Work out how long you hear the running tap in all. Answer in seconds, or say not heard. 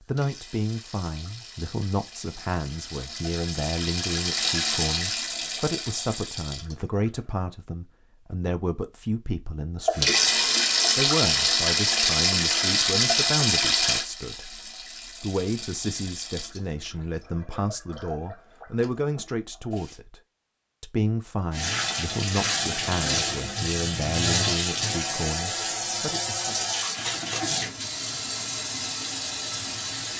26 s.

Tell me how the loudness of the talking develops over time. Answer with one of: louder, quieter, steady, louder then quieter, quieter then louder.
steady.